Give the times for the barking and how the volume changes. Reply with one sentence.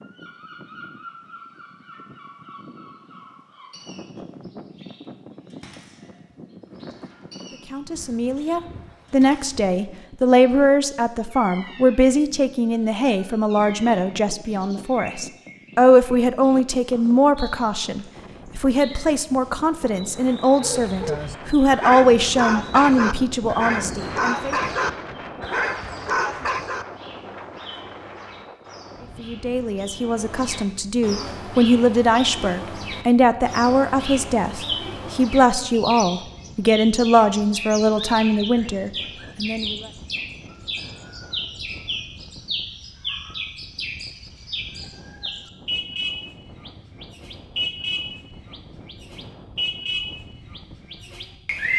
The barking can be heard from 20.6 to 26.9 s, at a steady volume.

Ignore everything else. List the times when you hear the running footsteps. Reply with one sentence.
The running footsteps can't be heard in this clip.